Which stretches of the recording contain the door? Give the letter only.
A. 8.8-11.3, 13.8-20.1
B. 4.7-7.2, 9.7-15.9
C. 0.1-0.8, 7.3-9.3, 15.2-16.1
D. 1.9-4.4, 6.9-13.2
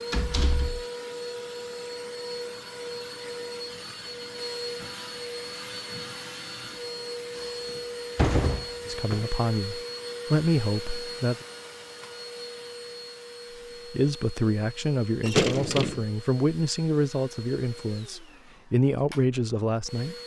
C.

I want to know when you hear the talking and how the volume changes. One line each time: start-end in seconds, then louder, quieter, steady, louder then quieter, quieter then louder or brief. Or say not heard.
8.8-11.3 brief
13.8-20.1 quieter then louder.